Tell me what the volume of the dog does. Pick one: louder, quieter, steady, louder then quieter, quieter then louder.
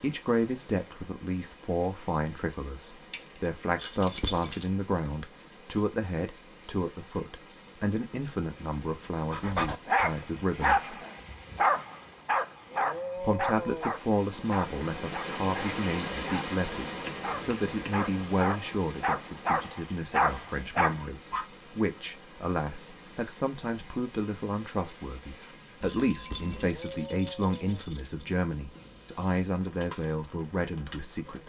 quieter then louder.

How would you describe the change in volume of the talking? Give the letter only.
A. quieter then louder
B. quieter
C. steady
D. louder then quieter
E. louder
C.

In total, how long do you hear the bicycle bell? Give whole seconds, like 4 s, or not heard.
2 s.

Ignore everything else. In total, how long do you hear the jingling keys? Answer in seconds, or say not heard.
3 s.